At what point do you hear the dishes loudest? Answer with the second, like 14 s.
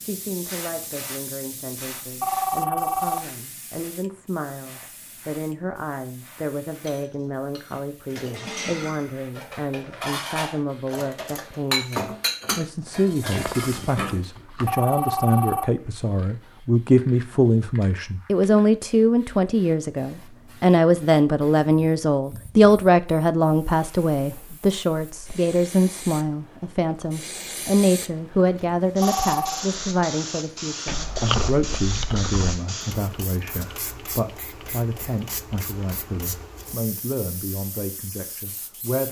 12 s.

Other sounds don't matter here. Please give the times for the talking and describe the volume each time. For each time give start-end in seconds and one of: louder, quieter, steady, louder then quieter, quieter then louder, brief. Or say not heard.
0.0-39.0 louder then quieter.